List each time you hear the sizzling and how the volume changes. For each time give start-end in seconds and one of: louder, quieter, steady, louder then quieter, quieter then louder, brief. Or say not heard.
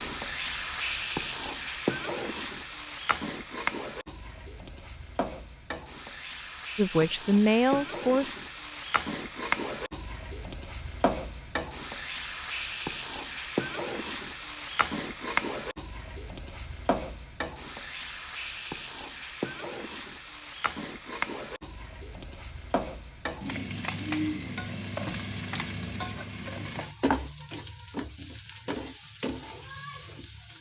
0.0-30.5 steady.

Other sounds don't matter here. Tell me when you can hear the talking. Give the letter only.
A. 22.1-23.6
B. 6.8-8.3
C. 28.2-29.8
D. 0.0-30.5
B.